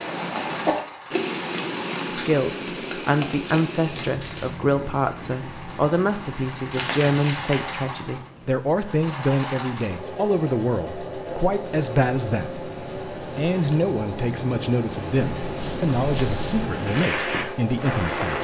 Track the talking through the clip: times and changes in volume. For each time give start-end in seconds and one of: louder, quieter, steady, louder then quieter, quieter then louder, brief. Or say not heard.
2.1-18.3 steady.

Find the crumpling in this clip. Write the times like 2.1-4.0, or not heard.
4.0-4.5, 6.7-7.8, 15.4-16.6.